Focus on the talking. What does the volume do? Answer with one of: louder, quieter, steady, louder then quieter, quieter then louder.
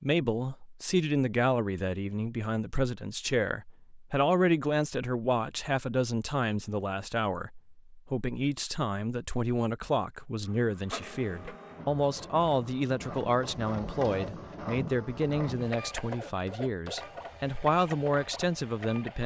steady.